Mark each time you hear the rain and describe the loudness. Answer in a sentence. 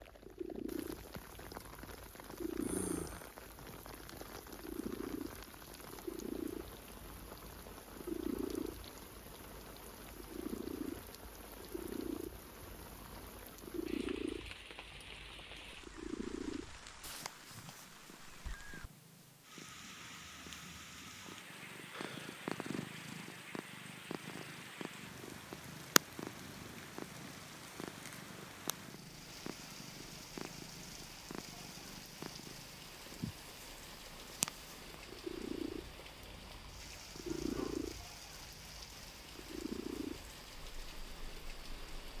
The rain can be heard from 0.0 to 42.1 s, at a steady volume.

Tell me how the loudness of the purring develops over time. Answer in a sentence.
The loudness of the purring goes down, then up.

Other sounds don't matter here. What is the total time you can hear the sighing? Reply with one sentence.
You can hear the sighing for 2 seconds altogether.